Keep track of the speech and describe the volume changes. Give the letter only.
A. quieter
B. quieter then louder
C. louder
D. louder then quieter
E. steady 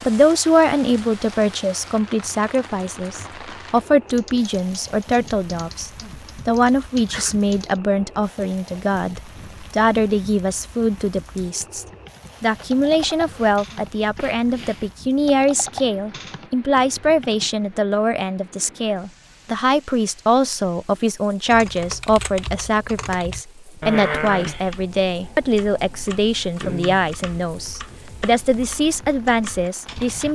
E.